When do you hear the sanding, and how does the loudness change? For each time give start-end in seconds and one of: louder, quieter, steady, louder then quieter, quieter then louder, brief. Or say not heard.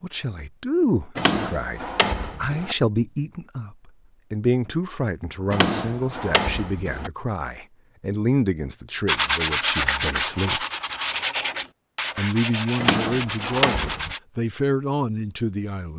9.1-14.2 quieter.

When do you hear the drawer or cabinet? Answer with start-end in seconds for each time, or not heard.
1.1-2.8, 5.5-7.1, 12.8-14.2.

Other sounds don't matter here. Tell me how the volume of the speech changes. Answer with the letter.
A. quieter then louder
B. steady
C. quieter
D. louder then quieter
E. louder
B.